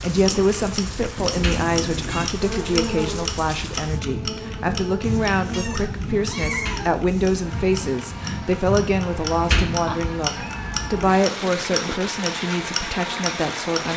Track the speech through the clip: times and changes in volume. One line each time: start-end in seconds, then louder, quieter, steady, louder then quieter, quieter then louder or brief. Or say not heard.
0.0-13.9 steady.